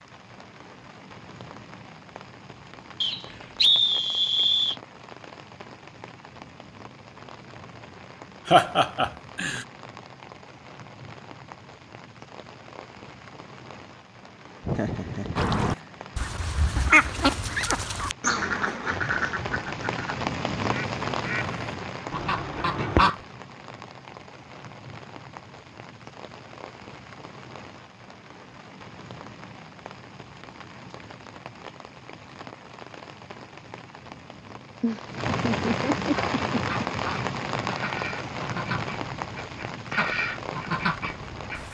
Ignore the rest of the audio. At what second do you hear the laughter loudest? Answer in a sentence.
The volume of the laughter peaks at 9 seconds.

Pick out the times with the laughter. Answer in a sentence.
The laughter can be heard from 8.4 to 9.7 s, from 14.6 to 16.0 s and from 34.8 to 36.9 s.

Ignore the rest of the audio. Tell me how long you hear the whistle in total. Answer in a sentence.
The whistle can be heard for 2 seconds in total.